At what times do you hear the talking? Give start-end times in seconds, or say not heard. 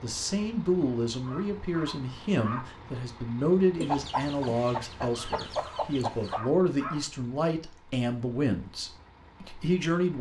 0.0-10.1.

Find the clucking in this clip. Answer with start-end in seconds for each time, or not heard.
3.8-6.4.